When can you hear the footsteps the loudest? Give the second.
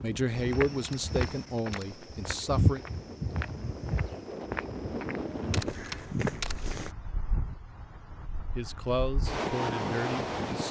3 s.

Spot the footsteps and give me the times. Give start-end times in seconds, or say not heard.
0.3-7.0.